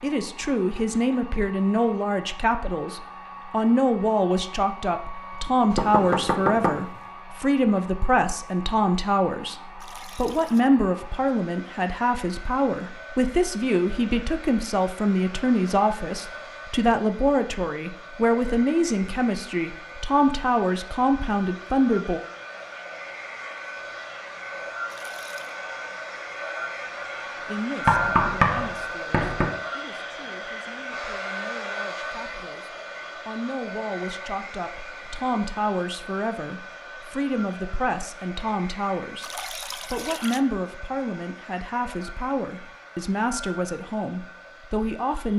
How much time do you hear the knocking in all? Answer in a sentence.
You can hear the knocking for 3 seconds altogether.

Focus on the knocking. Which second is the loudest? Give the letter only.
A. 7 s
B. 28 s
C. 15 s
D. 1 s
B.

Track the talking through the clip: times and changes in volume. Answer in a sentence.
The talking can be heard from 0.0 to 22.2 s, at a steady volume; and from 27.4 to 45.3 s, getting louder.